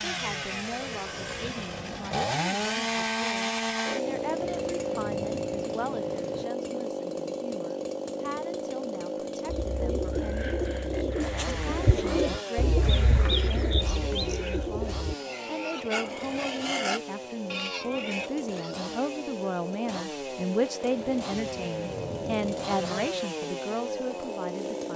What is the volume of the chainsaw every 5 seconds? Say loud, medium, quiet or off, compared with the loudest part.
loud, loud, medium, medium, loud.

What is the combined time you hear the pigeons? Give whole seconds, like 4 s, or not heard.
6 s.